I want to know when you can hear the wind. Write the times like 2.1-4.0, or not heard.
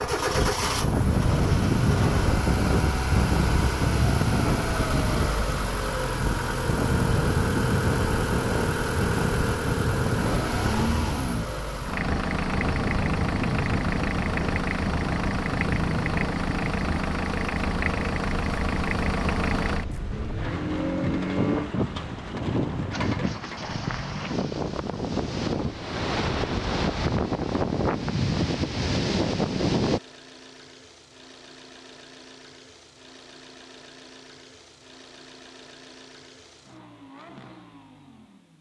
0.0-30.0.